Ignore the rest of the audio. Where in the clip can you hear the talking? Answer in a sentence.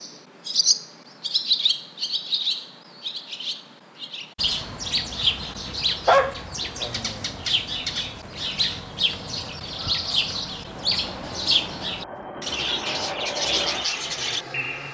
The talking can't be heard in this clip.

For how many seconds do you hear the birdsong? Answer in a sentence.
You can hear the birdsong for 15 seconds altogether.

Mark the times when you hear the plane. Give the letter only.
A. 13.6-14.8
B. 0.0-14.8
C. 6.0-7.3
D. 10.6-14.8
D.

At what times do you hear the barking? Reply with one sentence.
You can hear the barking from 6.0 to 7.3 s.